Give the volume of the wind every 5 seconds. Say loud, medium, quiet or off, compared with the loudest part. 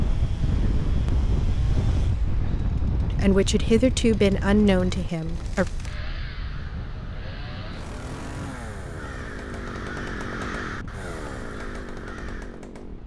loud, medium, quiet.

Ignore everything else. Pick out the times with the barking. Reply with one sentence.
The barking can't be heard in this clip.